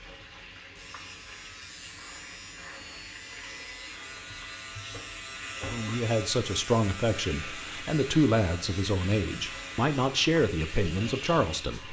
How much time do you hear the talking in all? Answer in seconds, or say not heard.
6 s.